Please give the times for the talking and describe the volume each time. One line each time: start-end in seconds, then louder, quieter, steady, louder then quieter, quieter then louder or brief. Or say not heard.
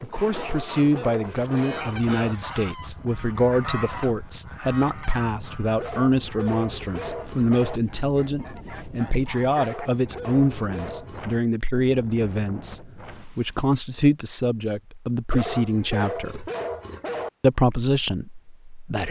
0.0-16.5 steady
17.4-19.0 brief.